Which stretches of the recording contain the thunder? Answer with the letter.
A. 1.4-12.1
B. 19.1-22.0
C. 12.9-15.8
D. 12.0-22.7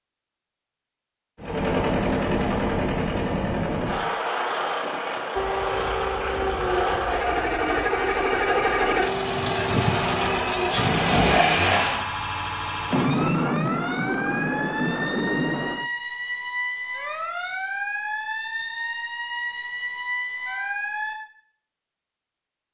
C.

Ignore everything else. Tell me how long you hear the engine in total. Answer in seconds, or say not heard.
11 s.